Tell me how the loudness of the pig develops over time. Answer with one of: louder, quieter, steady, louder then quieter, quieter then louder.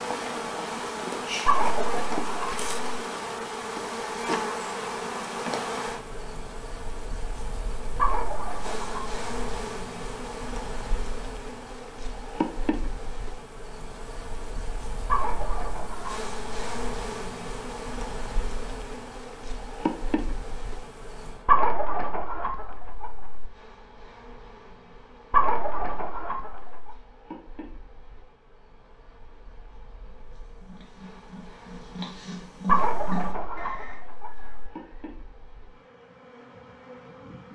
louder then quieter.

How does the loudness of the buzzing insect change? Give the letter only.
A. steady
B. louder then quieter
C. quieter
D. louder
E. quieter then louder
C.